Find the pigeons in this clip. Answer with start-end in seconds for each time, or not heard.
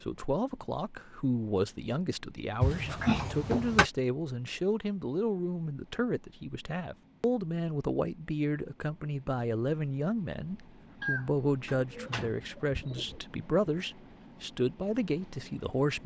11.0-13.2.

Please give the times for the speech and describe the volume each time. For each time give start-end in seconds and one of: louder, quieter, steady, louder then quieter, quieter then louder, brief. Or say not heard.
0.0-16.0 steady.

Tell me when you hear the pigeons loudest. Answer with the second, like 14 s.
11 s.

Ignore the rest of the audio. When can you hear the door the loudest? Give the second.
3 s.